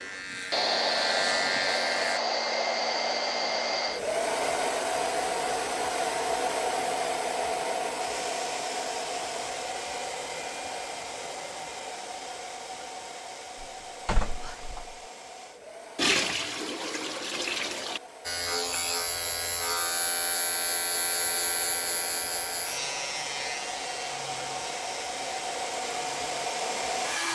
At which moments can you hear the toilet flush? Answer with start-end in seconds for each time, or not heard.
15.9-18.0.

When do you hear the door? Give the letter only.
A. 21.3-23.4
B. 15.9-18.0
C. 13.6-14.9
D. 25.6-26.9
C.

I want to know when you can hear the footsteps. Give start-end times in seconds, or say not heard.
not heard.